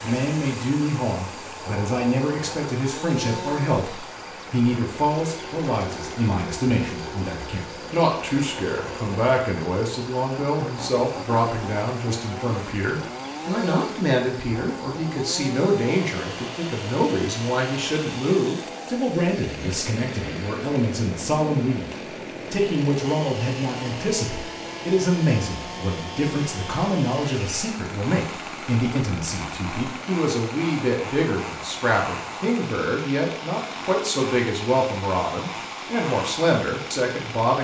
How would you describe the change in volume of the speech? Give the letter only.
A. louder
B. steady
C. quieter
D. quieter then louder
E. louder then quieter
B.